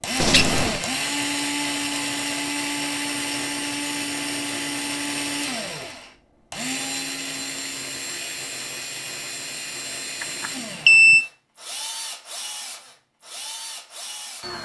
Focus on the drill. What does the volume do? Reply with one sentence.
The volume of the drill goes down.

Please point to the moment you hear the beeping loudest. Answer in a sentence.
The loudest moment of the beeping is at 11 seconds.